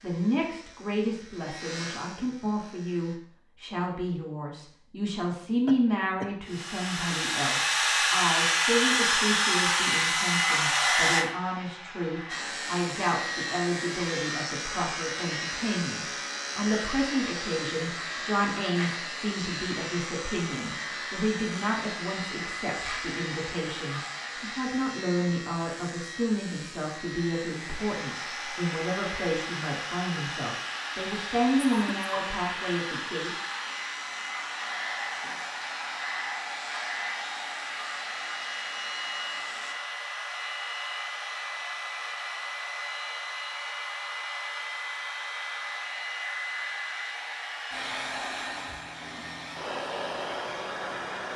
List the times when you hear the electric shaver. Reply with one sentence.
You can hear the electric shaver from 0.0 to 3.2 s and from 12.2 to 39.8 s.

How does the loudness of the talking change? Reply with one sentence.
The volume of the talking stays about the same.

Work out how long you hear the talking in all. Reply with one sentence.
You can hear the talking for 33 seconds altogether.